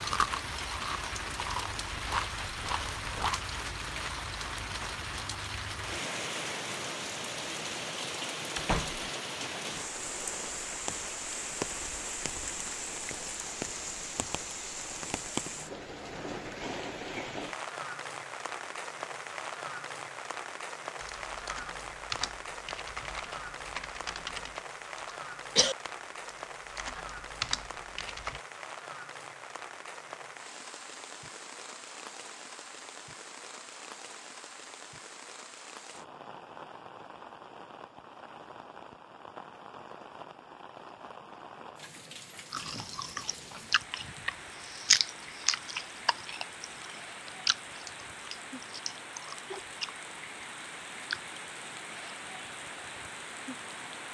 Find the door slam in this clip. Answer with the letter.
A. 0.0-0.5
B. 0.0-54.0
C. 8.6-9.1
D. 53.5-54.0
C.